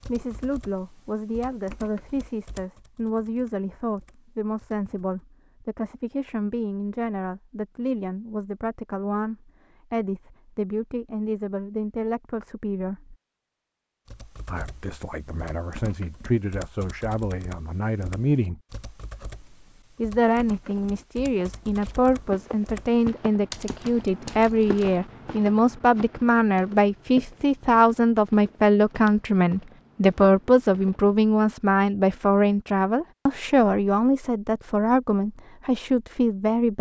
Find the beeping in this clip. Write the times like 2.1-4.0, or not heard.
not heard.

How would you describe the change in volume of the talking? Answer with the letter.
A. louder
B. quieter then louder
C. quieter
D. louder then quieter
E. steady
A.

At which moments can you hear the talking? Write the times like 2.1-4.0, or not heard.
0.0-13.2, 14.4-18.6, 19.9-36.7.